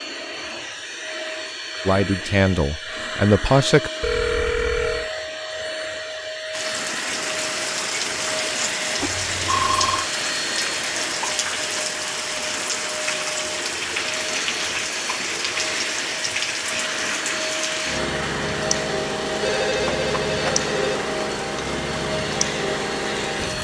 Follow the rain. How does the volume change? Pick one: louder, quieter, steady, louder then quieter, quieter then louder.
steady.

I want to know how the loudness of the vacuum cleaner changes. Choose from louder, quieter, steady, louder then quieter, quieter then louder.
steady.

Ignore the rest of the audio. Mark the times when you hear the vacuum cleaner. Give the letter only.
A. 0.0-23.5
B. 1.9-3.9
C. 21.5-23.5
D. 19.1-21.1
A.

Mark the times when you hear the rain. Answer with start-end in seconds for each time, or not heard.
6.5-23.5.